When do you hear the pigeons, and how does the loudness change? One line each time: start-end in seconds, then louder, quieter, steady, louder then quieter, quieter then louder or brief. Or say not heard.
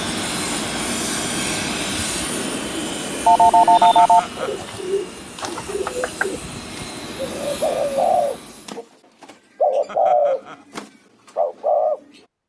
2.2-12.2 louder.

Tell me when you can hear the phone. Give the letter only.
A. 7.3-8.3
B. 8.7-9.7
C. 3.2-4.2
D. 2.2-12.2
C.